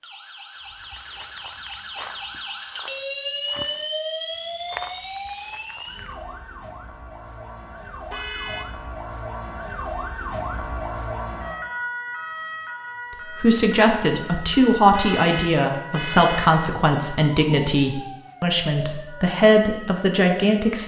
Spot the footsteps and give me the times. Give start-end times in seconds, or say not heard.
0.7-6.2.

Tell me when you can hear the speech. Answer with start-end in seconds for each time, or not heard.
13.4-20.8.